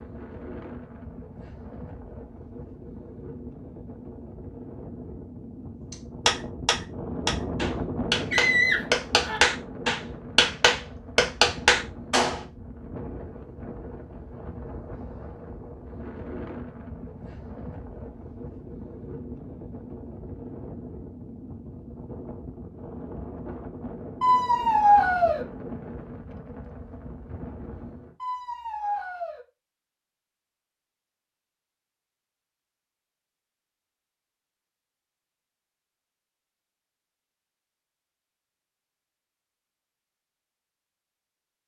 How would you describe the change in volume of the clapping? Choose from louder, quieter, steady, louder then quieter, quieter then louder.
louder.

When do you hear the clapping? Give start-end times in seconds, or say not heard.
5.9-12.4.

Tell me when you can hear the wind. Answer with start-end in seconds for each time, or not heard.
0.0-28.1.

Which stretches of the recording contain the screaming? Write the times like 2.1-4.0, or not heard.
8.3-9.4, 24.2-25.4, 28.2-29.4.